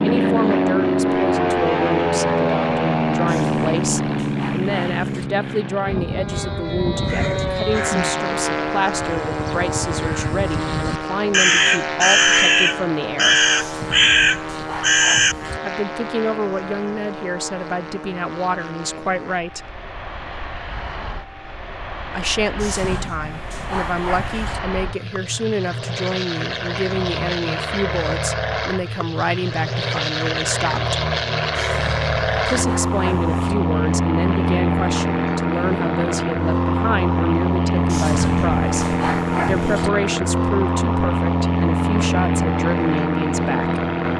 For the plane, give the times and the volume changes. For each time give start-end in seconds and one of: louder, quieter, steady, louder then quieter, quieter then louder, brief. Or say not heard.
0.0-44.1 quieter then louder.